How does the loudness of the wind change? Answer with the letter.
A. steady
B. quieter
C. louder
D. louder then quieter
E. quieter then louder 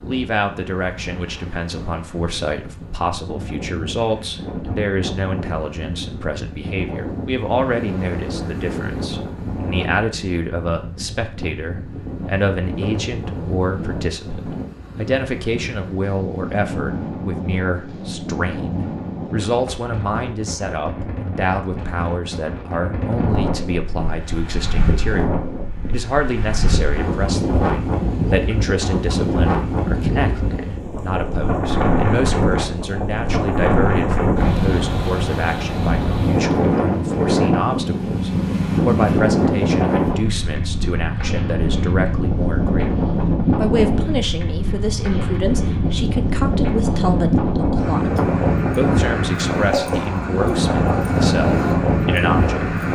C.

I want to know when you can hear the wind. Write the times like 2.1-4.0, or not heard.
0.0-52.9.